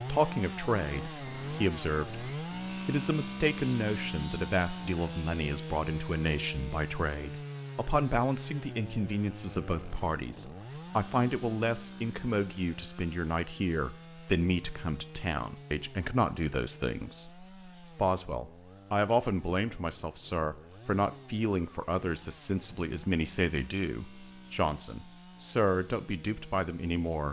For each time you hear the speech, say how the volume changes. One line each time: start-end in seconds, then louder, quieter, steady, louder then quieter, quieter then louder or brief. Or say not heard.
0.1-27.2 steady.